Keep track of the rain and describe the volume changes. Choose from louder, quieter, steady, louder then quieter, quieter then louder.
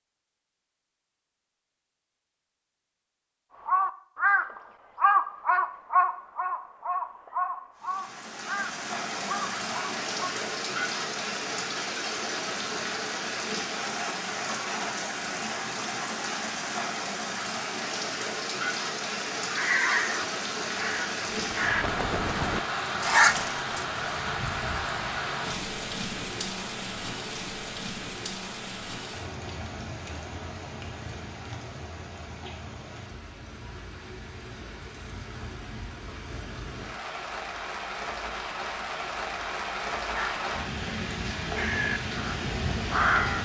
quieter then louder.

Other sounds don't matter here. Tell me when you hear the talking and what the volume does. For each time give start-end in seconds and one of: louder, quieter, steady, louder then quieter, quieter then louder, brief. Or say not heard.
not heard.